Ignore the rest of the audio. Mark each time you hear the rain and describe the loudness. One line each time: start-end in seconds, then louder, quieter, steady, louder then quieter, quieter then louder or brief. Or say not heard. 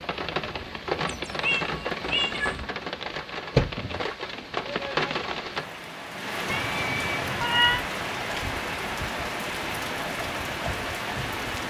0.0-11.6 steady.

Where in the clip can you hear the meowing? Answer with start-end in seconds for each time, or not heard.
0.9-2.6, 6.5-7.8.